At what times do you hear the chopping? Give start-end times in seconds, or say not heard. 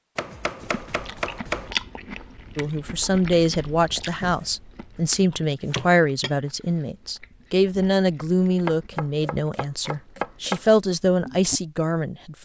0.1-1.7, 4.2-5.9, 8.7-10.6.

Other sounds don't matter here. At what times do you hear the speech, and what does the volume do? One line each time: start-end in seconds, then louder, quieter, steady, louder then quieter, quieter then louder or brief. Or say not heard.
2.5-12.3 steady.